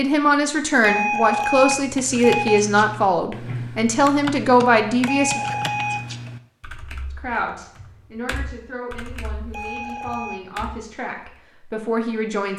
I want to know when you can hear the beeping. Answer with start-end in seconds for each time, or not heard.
0.8-2.6, 5.0-6.1, 9.5-10.4.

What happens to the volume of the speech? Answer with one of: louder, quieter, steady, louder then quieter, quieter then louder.
quieter then louder.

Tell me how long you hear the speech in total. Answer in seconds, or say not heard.
11 s.